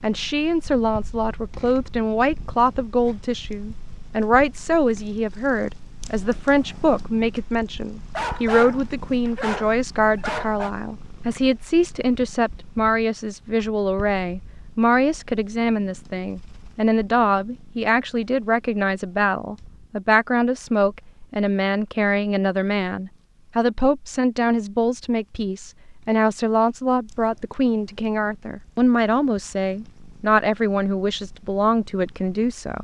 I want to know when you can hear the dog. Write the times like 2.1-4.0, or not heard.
8.2-10.7.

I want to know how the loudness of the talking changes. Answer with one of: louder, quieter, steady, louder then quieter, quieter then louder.
steady.